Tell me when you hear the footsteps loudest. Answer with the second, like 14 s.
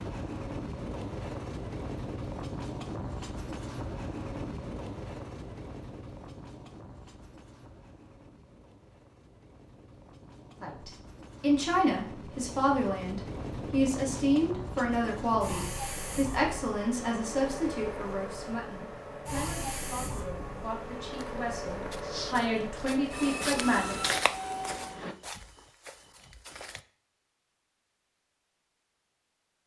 24 s.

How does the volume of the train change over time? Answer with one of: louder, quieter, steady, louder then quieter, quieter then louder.
quieter then louder.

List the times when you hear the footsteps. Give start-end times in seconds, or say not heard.
21.1-26.8.